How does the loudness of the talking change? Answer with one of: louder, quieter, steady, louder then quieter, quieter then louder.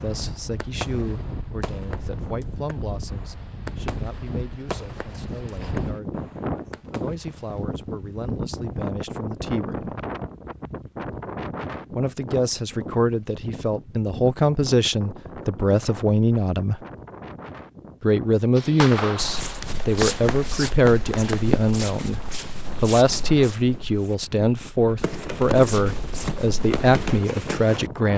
louder.